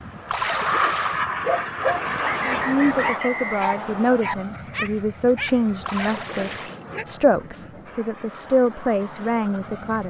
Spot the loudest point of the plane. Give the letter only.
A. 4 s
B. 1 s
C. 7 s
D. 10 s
B.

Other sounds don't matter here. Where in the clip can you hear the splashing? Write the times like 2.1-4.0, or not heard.
0.2-1.2, 5.8-6.8.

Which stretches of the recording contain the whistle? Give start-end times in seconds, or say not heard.
2.2-4.2.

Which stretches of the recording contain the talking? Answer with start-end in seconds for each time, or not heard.
2.5-10.0.